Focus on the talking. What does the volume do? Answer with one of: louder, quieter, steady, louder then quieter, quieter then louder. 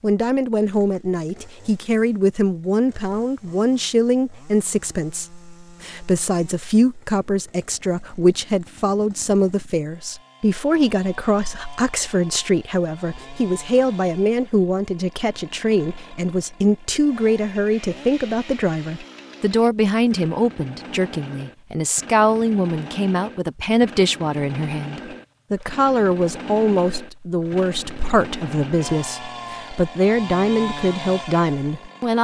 steady.